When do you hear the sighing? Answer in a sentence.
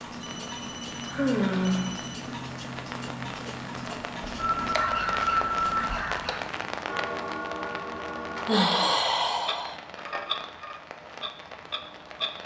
You can hear the sighing from 1.1 to 1.9 s, from 4.8 to 6.4 s and from 8.4 to 9.8 s.